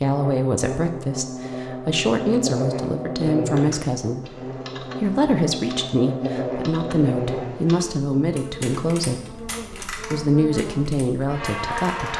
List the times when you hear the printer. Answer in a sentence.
The printer can't be heard in this clip.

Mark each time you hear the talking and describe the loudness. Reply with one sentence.
The talking can be heard from 0.0 to 12.1 s, at a steady volume.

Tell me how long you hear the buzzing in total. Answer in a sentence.
The buzzing can be heard for 12 seconds in total.